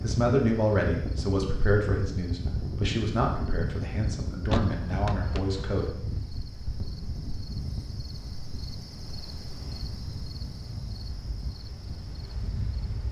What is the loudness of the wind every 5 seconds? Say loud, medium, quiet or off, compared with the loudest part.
loud, medium, medium.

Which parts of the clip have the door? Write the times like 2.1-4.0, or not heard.
4.5-5.7.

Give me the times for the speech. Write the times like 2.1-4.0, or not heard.
0.0-6.0.